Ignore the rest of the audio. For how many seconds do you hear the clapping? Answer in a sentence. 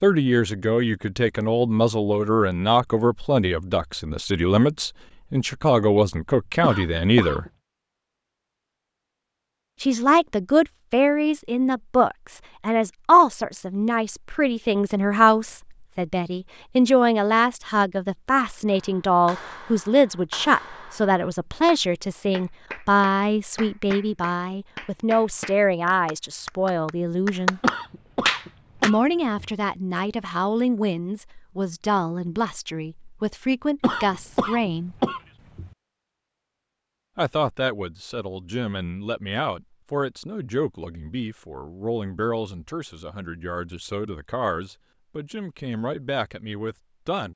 The clapping can be heard for 10 seconds in total.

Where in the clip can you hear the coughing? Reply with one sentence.
The coughing can be heard from 6.6 to 7.5 s, from 27.6 to 29.5 s and from 33.8 to 35.7 s.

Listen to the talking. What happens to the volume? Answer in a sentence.
The loudness of the talking goes down.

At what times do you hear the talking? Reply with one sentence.
The talking can be heard from 0.0 to 7.5 s, from 9.8 to 27.6 s, from 28.8 to 35.0 s and from 37.1 to 47.3 s.